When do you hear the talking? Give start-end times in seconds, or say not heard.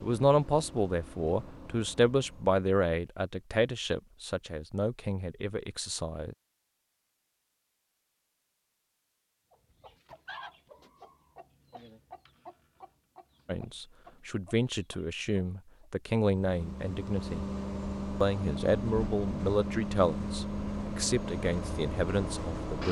0.0-6.3, 13.4-17.4, 18.2-22.8.